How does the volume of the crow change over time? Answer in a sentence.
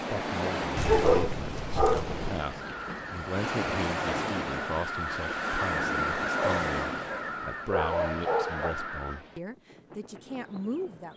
The volume of the crow goes up, then down.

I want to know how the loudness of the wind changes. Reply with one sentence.
The loudness of the wind goes down.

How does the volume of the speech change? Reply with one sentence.
The volume of the speech stays about the same.